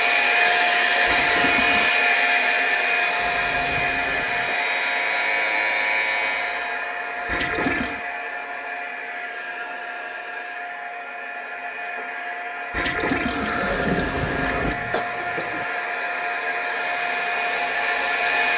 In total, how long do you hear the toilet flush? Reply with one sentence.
You can hear the toilet flush for 4 seconds altogether.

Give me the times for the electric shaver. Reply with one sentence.
The electric shaver can be heard from 4.4 to 6.8 s.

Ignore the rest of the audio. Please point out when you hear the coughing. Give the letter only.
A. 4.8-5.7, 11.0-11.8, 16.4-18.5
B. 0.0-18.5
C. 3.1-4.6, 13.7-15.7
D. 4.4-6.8
C.